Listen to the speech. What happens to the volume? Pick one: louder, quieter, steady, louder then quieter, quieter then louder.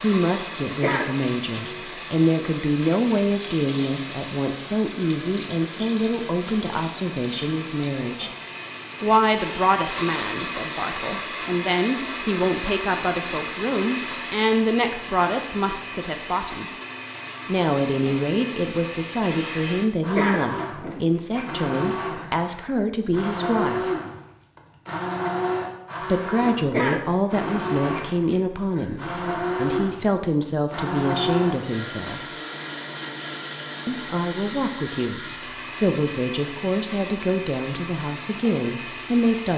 steady.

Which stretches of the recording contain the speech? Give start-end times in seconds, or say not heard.
0.0-8.3, 9.0-16.7, 17.4-23.9, 26.0-32.2, 33.9-39.5.